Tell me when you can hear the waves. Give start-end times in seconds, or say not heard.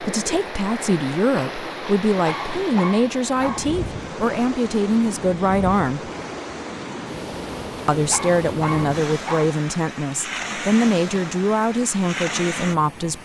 0.0-13.2.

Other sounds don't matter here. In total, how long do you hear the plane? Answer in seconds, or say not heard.
not heard.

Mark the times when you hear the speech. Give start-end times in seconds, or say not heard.
0.0-6.1, 7.8-13.2.